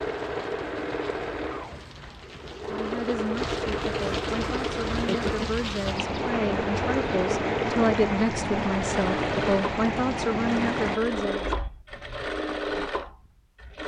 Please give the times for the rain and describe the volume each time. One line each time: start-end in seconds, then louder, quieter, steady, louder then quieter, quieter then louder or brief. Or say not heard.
0.0-11.0 louder.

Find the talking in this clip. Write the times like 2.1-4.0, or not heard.
2.6-11.6.